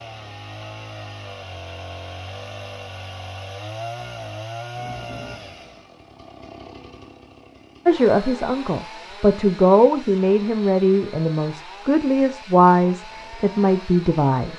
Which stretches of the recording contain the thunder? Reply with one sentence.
The thunder can be heard from 4.7 to 5.8 s.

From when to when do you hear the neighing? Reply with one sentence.
You can't hear the neighing here.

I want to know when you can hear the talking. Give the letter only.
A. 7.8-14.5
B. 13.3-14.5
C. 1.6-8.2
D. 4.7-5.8
A.